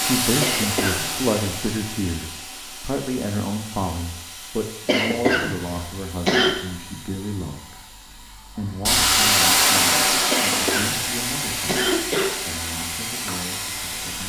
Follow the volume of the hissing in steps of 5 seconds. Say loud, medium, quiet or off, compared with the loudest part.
medium, loud, loud.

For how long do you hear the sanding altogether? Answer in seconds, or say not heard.
not heard.